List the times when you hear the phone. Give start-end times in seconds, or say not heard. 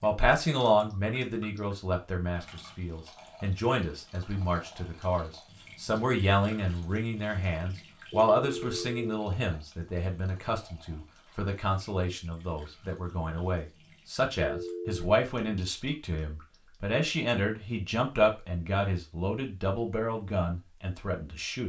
8.1-9.2, 14.3-15.1.